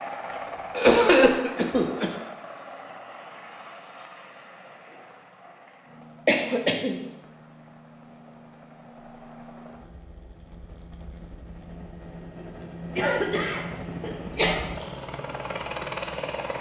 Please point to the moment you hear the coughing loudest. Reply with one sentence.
The volume of the coughing peaks at 1 second.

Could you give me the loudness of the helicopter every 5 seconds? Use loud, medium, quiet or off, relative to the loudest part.
medium, quiet, medium, loud.